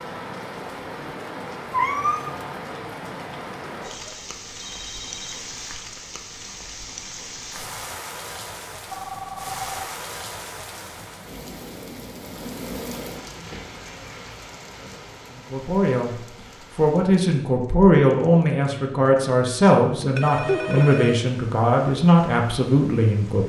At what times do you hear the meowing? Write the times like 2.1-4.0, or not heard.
1.7-2.4, 20.4-20.9.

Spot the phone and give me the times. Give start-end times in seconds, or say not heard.
3.9-5.4, 8.9-9.9, 19.9-21.1.